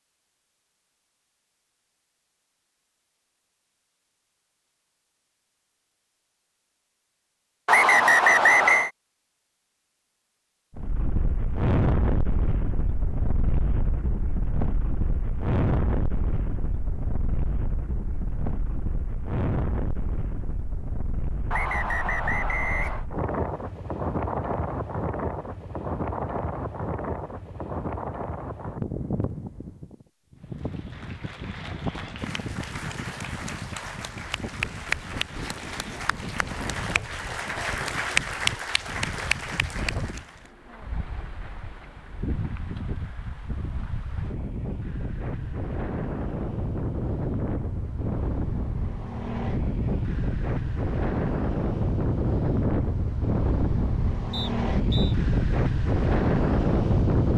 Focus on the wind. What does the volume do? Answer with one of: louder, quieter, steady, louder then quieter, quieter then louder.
quieter then louder.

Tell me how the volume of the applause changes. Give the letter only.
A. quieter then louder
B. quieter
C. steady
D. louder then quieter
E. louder
E.